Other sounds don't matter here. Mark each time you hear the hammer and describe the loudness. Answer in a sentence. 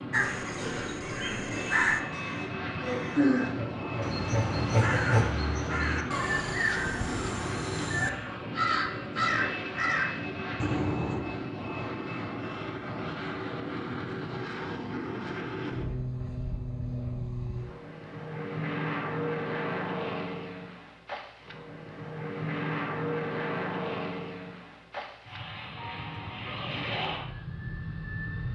You can't hear the hammer here.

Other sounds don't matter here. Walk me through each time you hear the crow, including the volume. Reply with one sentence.
You can hear the crow from 0.1 to 11.2 s, at a steady volume.